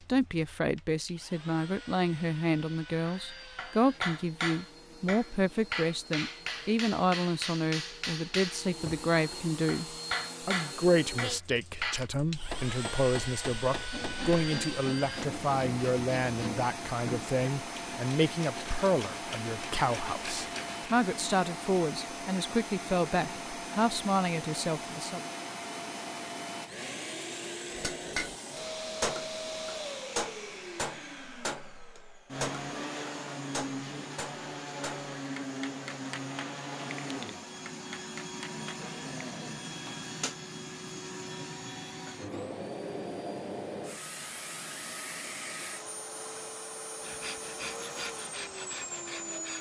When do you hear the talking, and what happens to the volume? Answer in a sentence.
You can hear the talking from 0.1 to 9.8 s, at a steady volume; and from 10.4 to 25.2 s, at a steady volume.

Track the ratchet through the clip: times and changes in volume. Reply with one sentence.
The ratchet can't be heard in this clip.